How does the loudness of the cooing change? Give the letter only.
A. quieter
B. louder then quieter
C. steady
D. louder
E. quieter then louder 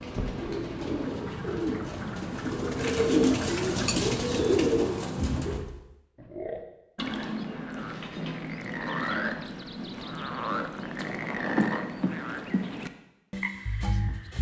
D.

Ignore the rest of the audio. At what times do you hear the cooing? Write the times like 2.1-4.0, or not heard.
0.0-5.6.